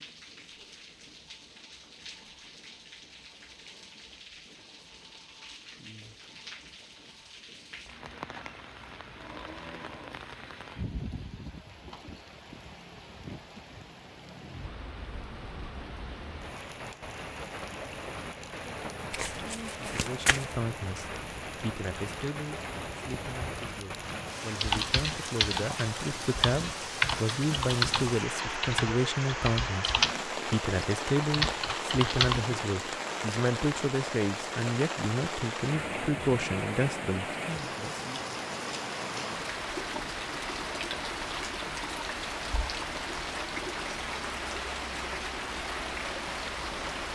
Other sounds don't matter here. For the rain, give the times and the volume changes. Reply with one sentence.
You can hear the rain from 0.0 to 47.1 s, getting louder.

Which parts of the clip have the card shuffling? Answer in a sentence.
You can hear the card shuffling from 19.1 to 20.6 s.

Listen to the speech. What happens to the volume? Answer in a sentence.
The volume of the speech goes up.